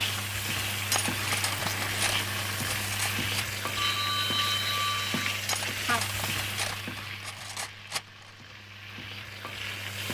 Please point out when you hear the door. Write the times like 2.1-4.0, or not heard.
not heard.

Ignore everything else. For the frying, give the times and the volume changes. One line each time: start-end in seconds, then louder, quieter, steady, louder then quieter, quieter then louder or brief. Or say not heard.
0.0-10.0 quieter.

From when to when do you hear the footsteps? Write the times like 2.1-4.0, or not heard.
not heard.